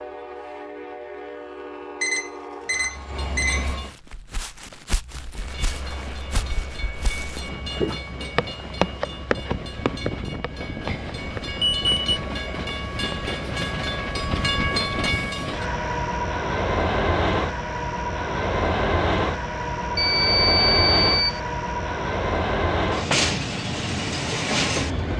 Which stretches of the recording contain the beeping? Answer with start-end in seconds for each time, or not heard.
2.0-3.6, 10.8-12.2, 19.9-21.4.